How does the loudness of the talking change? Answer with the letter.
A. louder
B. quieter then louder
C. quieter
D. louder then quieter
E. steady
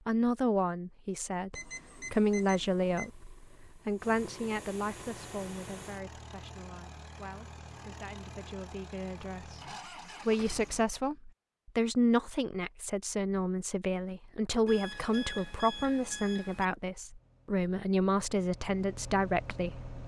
B.